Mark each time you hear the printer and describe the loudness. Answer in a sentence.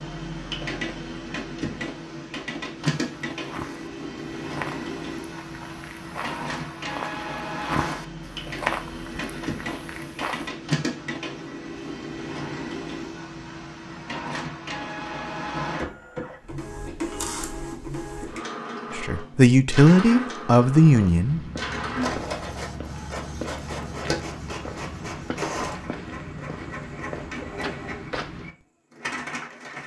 You can hear the printer from 0.0 to 29.8 s, at a steady volume.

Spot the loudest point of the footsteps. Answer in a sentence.
The volume of the footsteps peaks at 9 seconds.